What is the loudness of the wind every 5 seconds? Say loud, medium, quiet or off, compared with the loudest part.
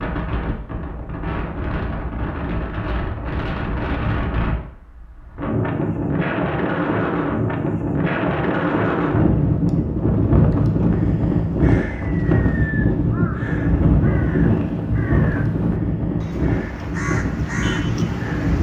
medium, loud, loud, loud.